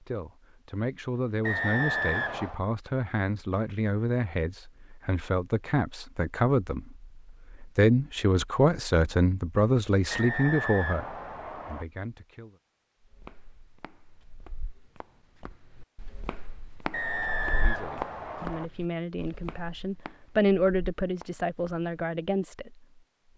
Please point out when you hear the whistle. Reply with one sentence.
The whistle can be heard from 1.4 to 2.6 s, from 10.1 to 11.8 s and from 16.9 to 18.7 s.